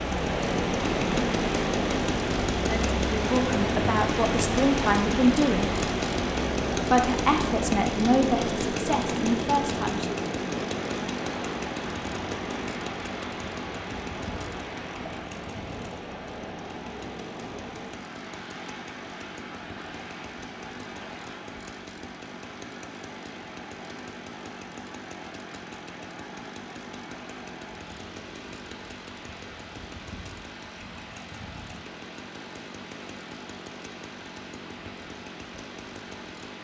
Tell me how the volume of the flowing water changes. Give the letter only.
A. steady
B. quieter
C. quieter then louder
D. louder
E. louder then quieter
B.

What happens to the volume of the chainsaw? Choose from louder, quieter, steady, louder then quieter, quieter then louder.
quieter.